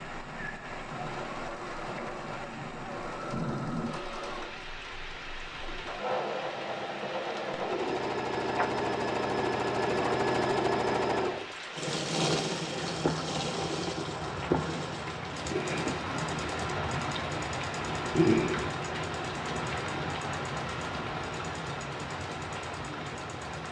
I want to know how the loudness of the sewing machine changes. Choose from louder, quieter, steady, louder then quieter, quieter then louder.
louder then quieter.